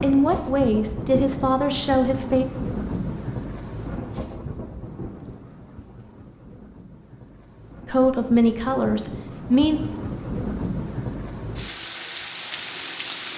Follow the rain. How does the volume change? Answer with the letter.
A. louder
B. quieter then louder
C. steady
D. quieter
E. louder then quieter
B.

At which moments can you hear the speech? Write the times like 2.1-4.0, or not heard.
0.0-2.5, 7.8-9.8.